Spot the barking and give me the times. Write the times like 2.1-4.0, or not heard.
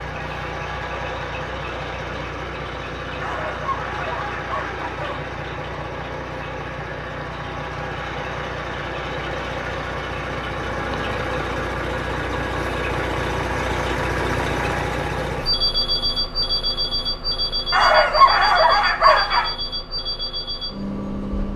3.1-5.2, 17.7-19.5.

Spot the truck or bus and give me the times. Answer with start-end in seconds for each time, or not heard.
0.0-21.5.